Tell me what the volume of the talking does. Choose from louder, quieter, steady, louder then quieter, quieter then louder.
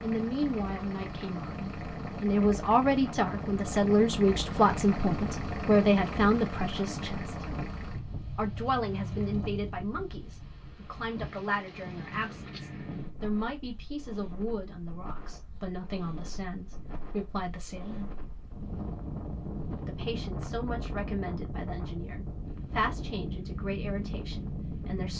quieter.